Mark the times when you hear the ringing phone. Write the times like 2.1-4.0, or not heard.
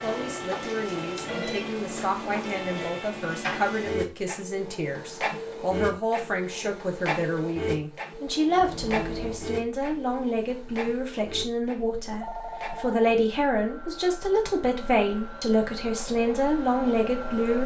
1.2-3.0, 8.6-9.4, 12.1-13.2.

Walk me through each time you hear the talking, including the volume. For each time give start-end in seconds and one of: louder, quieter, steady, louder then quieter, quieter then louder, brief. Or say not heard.
0.0-17.6 louder.